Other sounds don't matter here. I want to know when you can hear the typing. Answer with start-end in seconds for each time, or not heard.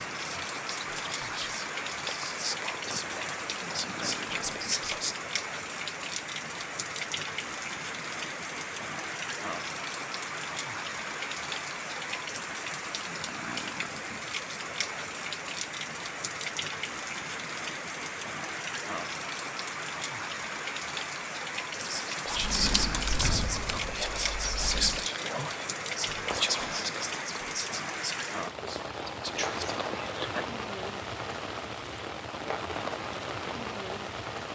22.3-25.1.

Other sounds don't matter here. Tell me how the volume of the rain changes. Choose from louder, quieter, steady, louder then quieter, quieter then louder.
steady.